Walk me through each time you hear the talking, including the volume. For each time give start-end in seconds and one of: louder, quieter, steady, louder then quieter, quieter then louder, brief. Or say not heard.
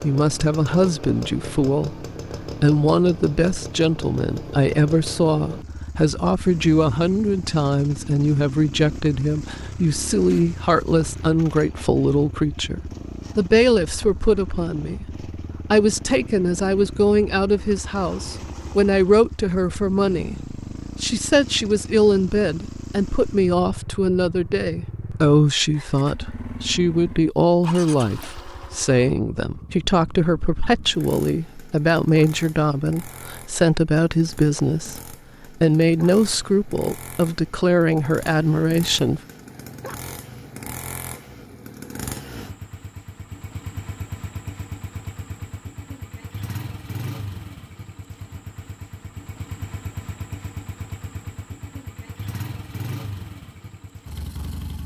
0.0-39.2 steady.